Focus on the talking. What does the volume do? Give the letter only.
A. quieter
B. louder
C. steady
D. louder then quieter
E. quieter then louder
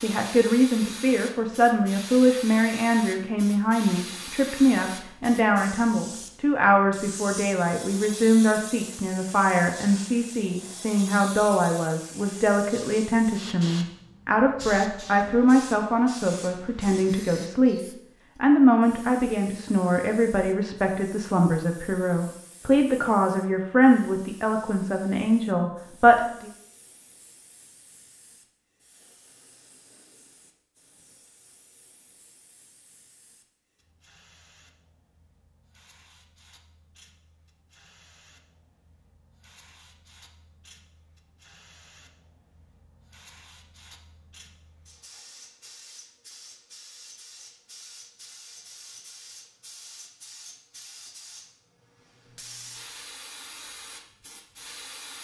C.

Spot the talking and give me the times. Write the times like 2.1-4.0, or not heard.
0.0-26.5.